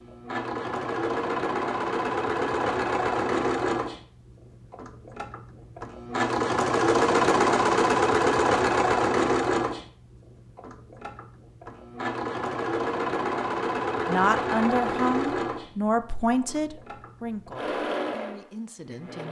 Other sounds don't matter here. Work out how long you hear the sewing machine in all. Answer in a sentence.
The sewing machine can be heard for 19 seconds in total.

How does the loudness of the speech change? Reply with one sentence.
The volume of the speech goes down.